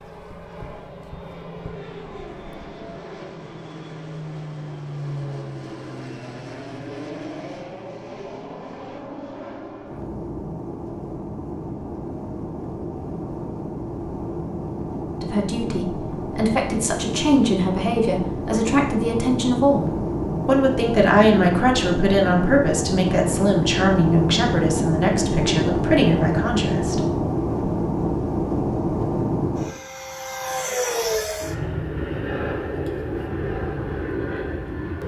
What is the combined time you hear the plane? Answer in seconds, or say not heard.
35 s.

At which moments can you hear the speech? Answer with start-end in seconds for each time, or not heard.
15.2-27.0.